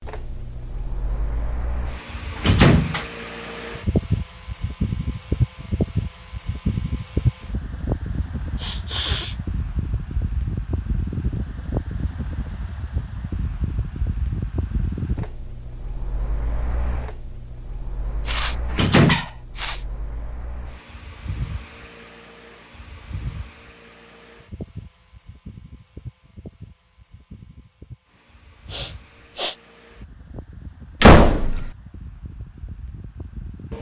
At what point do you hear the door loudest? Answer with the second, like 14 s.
31 s.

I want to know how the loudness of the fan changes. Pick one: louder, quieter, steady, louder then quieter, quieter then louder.
quieter.